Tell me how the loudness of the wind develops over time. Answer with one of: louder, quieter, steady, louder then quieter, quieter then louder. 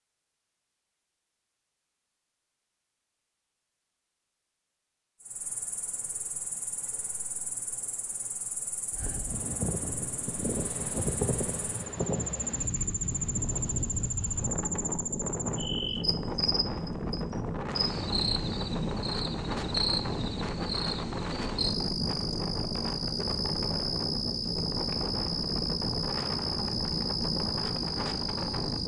steady.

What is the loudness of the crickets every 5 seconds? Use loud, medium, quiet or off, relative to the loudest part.
off, medium, loud, loud, loud, loud.